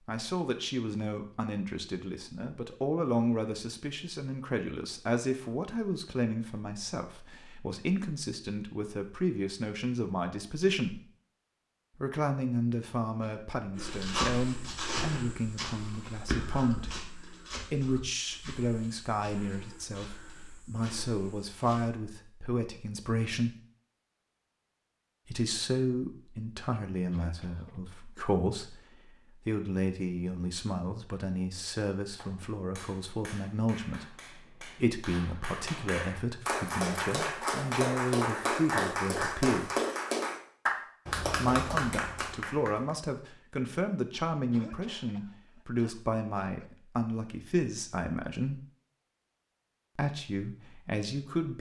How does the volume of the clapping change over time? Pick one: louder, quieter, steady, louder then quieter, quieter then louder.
louder.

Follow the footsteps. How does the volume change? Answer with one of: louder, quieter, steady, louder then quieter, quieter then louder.
quieter.